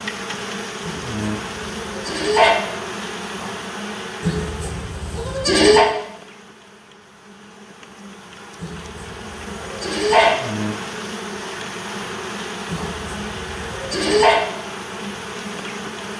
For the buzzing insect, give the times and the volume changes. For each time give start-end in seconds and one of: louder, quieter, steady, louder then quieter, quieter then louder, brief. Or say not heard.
0.0-16.1 quieter then louder.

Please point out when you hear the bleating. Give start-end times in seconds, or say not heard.
0.8-2.5, 4.2-5.8, 8.6-10.3, 12.7-14.4.